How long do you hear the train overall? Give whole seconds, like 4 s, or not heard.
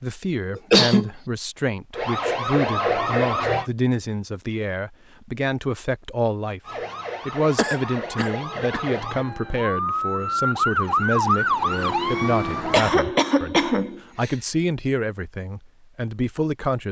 not heard.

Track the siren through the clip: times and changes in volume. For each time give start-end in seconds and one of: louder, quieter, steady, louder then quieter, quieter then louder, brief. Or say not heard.
1.9-3.7 brief
6.7-13.0 louder.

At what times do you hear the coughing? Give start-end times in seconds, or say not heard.
0.6-1.1, 7.5-8.8, 12.7-14.3.